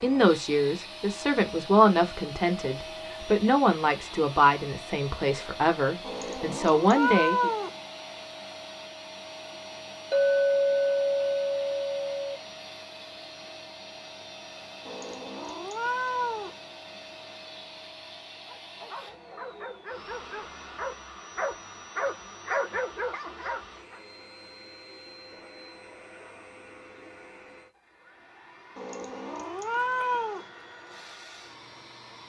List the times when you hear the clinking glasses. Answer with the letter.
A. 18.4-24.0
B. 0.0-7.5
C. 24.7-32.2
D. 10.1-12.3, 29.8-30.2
D.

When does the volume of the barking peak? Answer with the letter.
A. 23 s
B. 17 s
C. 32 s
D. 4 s
A.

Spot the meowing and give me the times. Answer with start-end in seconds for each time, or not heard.
6.0-7.8, 14.8-16.6, 28.8-30.5.